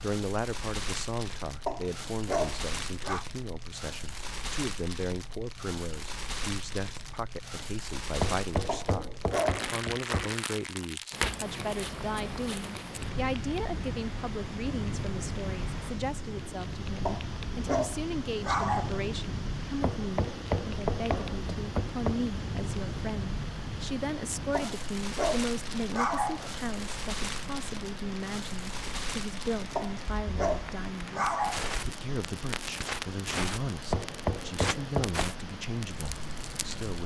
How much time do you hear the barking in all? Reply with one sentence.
The barking can be heard for 9 seconds in total.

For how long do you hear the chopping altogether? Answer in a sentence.
The chopping can be heard for 6 seconds in total.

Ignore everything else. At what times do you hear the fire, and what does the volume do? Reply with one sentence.
You can hear the fire from 0.0 to 37.0 s, at a steady volume.